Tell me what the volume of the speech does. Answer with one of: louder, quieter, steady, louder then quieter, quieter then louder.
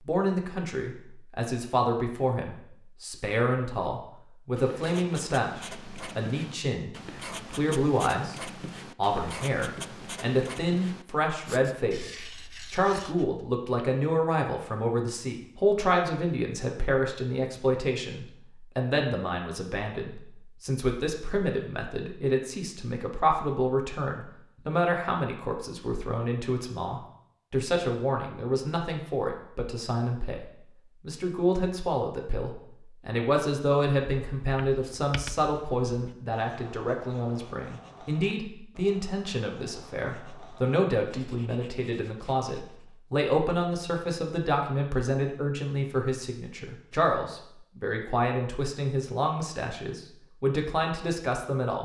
steady.